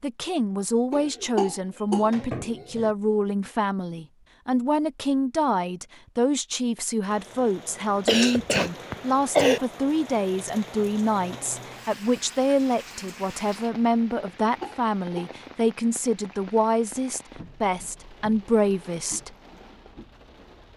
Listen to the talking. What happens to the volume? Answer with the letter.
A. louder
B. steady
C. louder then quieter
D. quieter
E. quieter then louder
B.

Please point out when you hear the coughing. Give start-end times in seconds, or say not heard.
0.9-2.9, 8.1-9.6, 14.2-15.3.